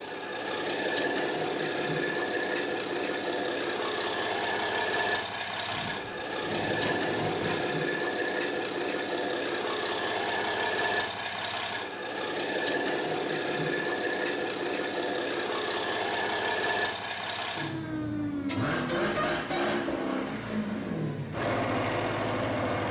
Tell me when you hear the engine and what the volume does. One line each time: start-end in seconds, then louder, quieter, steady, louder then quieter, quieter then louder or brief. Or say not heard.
0.0-22.8 steady.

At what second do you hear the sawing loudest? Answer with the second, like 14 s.
7 s.